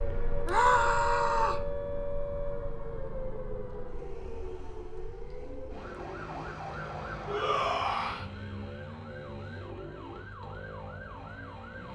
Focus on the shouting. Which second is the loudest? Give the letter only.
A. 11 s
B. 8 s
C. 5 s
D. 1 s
D.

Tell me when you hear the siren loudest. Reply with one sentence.
The loudest moment of the siren is at 1 second.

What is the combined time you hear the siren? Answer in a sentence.
You can hear the siren for 12 seconds altogether.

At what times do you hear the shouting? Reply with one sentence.
The shouting can be heard from 0.5 to 1.6 s and from 7.2 to 8.2 s.